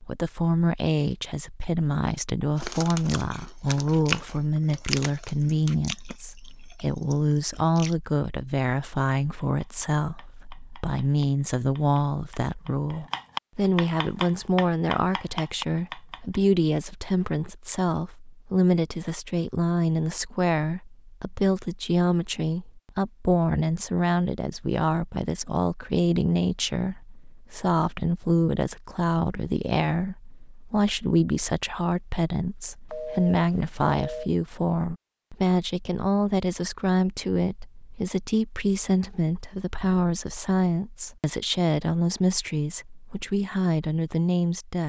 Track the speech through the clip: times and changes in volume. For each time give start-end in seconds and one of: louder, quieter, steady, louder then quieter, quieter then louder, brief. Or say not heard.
0.0-44.8 steady.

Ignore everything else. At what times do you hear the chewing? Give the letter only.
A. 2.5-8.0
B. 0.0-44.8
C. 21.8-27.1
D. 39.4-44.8
A.